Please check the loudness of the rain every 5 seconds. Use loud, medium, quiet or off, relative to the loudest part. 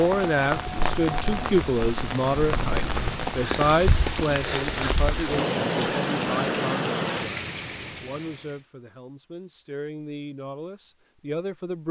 loud, loud, off.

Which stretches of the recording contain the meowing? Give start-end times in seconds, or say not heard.
2.4-3.1.